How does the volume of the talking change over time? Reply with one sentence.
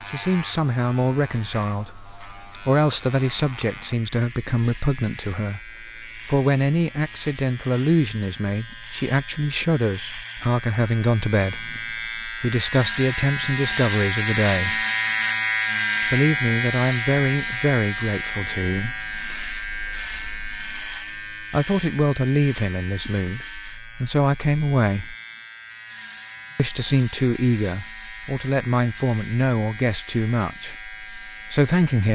The loudness of the talking stays about the same.